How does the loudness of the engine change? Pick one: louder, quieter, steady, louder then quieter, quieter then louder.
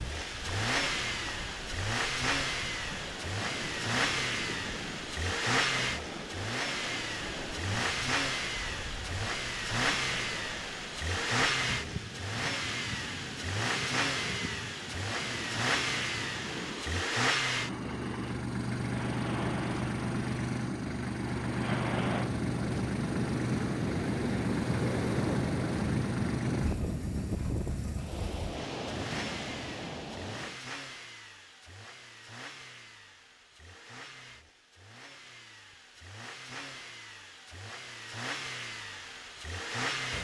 quieter.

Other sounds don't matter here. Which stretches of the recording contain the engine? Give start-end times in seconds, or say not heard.
0.0-40.2.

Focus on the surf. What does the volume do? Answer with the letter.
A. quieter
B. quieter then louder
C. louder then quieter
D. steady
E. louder
E.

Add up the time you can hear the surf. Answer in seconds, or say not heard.
31 s.